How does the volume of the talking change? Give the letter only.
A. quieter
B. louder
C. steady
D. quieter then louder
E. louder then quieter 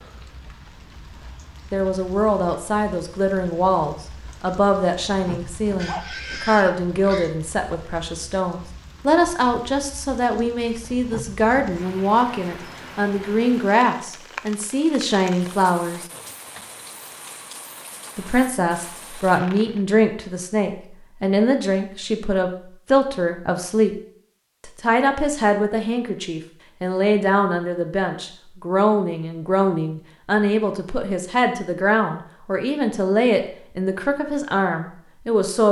C.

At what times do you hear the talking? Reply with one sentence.
The talking can be heard from 1.7 to 16.0 s, from 18.1 to 23.9 s and from 24.8 to 35.6 s.